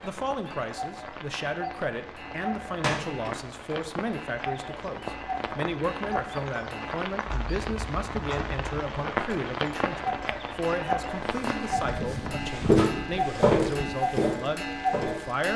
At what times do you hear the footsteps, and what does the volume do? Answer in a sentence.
The footsteps can be heard from 11.1 to 15.3 s, getting louder then quieter.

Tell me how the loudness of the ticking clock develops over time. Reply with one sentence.
The loudness of the ticking clock goes up.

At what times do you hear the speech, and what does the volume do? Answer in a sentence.
You can hear the speech from 0.0 to 15.5 s, at a steady volume.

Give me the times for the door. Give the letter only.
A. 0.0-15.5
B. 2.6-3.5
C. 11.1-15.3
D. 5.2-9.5
B.